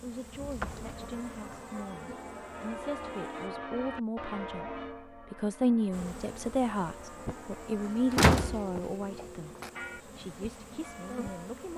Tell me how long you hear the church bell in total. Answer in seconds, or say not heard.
11 s.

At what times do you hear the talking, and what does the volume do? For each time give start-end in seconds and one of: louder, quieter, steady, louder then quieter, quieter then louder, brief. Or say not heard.
0.0-11.7 louder then quieter.